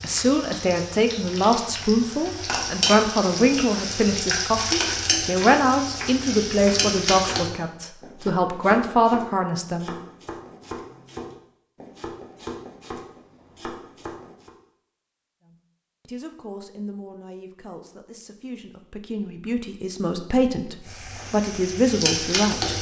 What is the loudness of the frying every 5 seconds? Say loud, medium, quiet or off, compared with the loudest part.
loud, loud, off, off, loud.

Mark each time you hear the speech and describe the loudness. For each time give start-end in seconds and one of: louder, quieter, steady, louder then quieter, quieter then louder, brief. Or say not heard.
0.0-9.9 steady
15.4-22.7 quieter then louder.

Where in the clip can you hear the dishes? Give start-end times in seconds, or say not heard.
not heard.